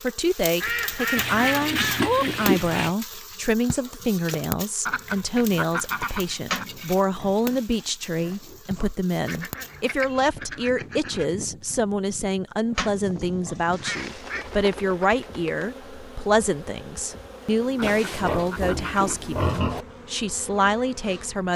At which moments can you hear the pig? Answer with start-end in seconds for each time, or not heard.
1.1-2.9, 6.5-7.6, 8.2-8.9, 12.8-13.8, 17.8-19.9.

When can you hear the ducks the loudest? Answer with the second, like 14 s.
2 s.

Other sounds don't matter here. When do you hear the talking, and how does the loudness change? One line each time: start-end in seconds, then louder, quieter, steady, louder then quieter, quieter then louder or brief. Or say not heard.
0.0-21.5 steady.